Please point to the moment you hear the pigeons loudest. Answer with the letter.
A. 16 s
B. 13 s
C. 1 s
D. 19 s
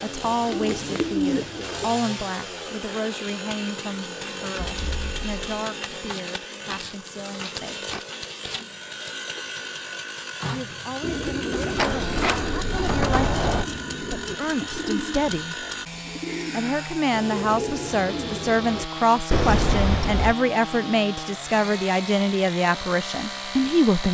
C.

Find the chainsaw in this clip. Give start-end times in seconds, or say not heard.
0.0-24.0.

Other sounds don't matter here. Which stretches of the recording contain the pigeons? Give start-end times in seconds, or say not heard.
0.0-1.9, 11.0-18.9.